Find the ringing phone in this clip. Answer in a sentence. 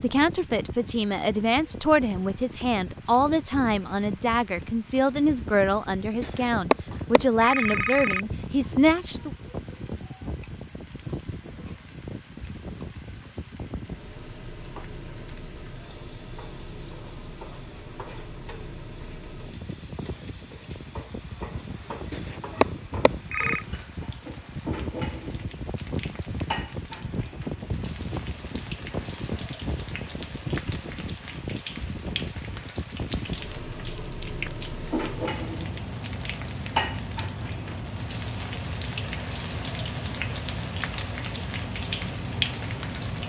The ringing phone can be heard from 6.2 to 8.2 s and from 22.1 to 23.6 s.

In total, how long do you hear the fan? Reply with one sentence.
You can hear the fan for 43 seconds altogether.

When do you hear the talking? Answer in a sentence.
You can hear the talking from 0.0 to 9.3 s.